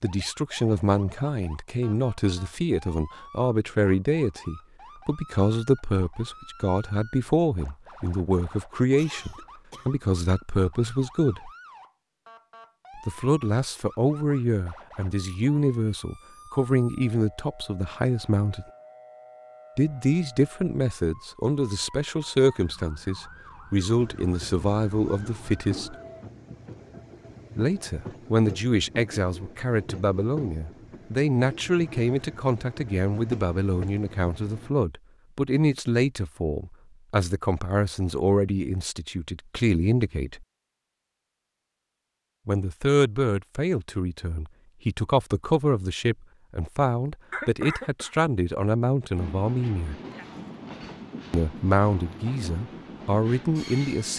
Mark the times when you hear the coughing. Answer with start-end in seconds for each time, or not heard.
8.9-9.9, 47.3-48.1.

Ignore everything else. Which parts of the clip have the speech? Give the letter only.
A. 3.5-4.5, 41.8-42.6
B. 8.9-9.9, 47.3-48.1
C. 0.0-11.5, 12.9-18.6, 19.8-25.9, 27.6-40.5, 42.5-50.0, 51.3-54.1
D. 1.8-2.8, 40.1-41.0
C.